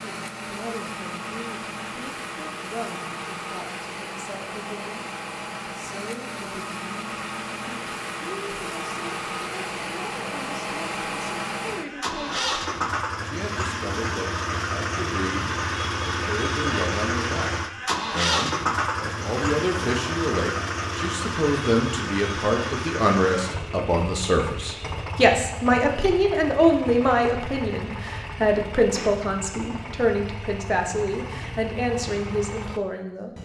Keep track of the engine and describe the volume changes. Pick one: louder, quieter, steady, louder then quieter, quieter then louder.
louder then quieter.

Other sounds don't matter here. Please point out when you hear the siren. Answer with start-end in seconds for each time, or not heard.
not heard.